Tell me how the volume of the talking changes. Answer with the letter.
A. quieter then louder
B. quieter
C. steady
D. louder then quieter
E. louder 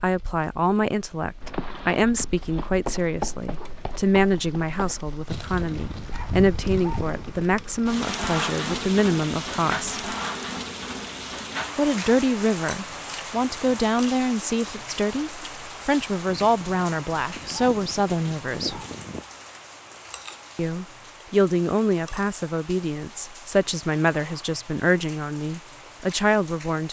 C.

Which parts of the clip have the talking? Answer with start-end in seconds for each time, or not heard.
0.0-10.0, 11.8-18.8, 20.6-26.8.